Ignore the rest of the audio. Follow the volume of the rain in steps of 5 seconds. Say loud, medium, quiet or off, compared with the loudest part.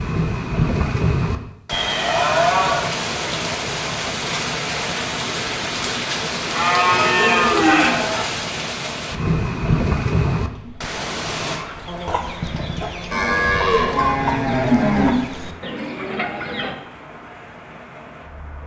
loud, loud, loud, quiet.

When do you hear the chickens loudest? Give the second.
14 s.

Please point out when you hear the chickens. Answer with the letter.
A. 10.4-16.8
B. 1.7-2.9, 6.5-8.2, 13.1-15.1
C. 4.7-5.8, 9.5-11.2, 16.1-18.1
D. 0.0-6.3
A.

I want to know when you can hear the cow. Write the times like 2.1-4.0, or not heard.
1.7-2.9, 6.5-8.2, 13.1-15.1.